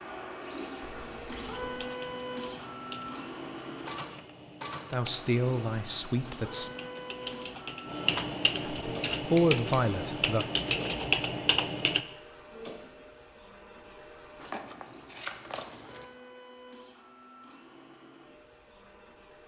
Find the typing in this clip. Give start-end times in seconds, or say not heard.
1.4-12.1.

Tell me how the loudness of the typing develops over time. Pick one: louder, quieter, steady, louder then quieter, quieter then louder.
louder.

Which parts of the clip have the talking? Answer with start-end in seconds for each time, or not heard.
4.9-6.7, 8.6-10.4.